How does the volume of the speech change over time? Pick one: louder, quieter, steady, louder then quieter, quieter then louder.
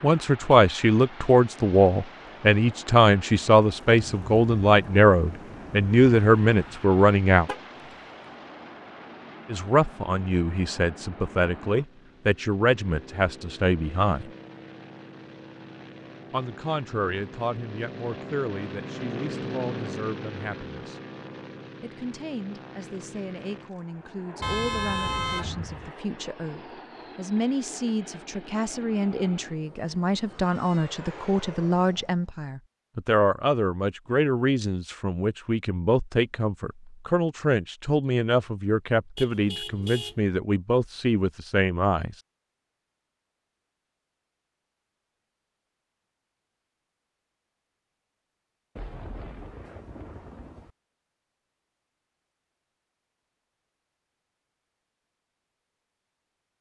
quieter then louder.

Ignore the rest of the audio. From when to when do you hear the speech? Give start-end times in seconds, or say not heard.
0.0-7.5, 9.4-14.3, 16.3-21.0, 21.8-42.1.